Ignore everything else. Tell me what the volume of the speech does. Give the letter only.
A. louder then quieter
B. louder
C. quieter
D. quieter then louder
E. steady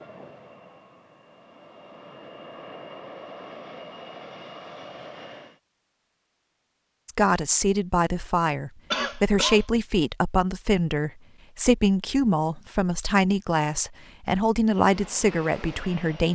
E.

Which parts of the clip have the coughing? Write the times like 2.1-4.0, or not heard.
8.9-9.7.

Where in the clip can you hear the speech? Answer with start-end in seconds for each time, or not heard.
7.0-16.3.